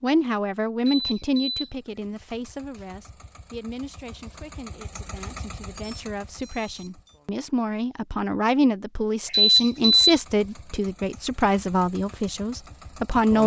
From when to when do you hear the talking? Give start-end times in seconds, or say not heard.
0.0-13.4.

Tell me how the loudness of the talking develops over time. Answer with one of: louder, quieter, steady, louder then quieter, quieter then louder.
quieter then louder.